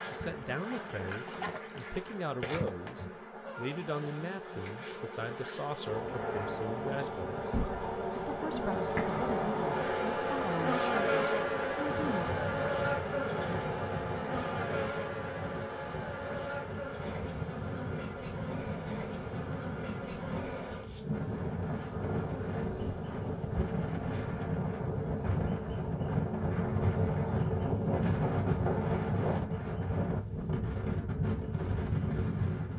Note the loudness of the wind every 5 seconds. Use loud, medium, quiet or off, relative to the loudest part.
off, off, medium, medium, medium, loud, loud.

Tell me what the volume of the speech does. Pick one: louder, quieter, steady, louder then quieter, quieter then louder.
steady.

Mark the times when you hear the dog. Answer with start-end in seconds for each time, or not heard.
not heard.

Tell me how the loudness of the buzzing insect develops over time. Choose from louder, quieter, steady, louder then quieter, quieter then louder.
louder then quieter.